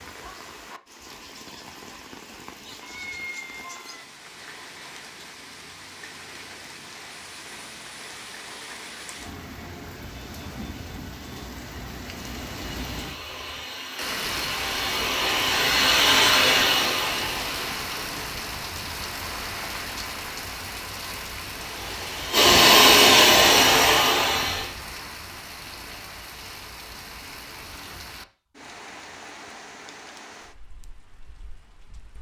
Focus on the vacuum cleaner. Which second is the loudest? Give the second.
23 s.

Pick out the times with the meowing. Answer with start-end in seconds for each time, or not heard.
2.8-4.0.